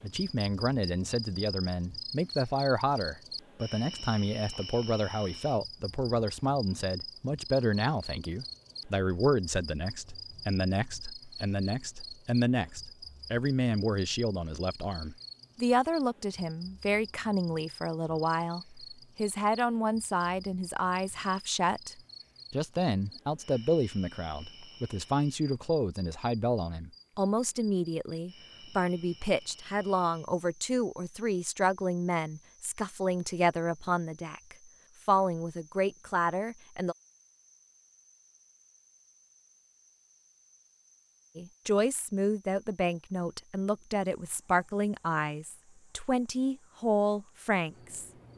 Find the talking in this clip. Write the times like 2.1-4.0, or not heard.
0.0-37.0, 41.4-48.1.